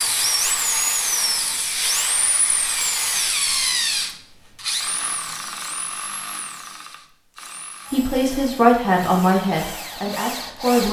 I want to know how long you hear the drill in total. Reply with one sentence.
You can hear the drill for 11 seconds altogether.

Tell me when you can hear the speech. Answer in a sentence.
You can hear the speech from 7.9 to 10.8 s.